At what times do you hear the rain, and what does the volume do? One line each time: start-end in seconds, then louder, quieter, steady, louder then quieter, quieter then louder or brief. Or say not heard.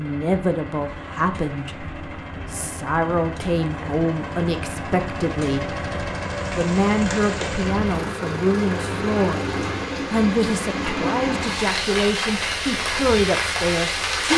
6.3-14.3 louder.